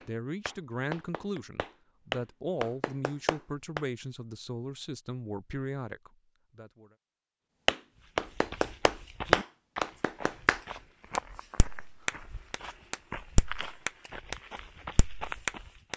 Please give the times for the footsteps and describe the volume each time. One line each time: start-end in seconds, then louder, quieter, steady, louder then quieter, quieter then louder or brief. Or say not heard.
8.0-15.9 quieter then louder.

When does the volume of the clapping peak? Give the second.
9 s.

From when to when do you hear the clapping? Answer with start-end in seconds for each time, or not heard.
0.0-3.8, 7.7-14.3, 14.9-15.9.